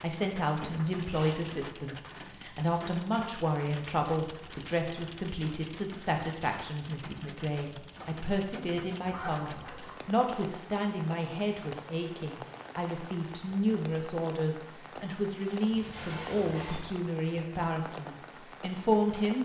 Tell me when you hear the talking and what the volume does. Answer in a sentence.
The talking can be heard from 0.0 to 19.4 s, at a steady volume.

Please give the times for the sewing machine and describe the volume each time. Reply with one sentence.
The sewing machine can't be heard in this clip.